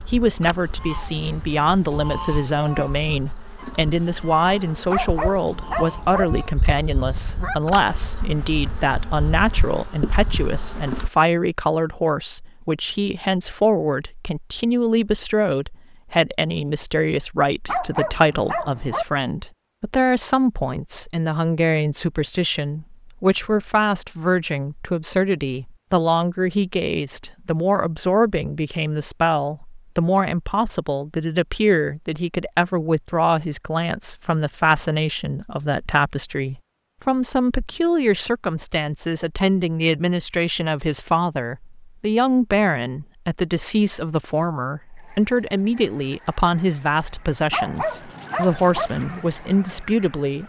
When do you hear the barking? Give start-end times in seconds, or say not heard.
4.9-6.2, 17.6-19.1, 47.5-48.9.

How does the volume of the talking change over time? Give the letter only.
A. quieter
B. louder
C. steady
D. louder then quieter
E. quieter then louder
C.